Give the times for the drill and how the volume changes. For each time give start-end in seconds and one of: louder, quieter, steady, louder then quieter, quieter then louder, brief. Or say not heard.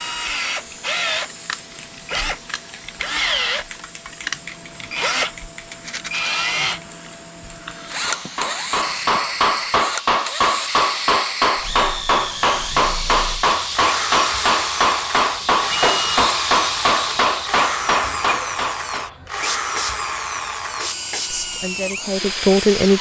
0.0-22.9 steady.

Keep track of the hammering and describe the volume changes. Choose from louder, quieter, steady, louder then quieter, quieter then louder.
steady.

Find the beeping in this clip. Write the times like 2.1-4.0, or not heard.
15.7-16.3.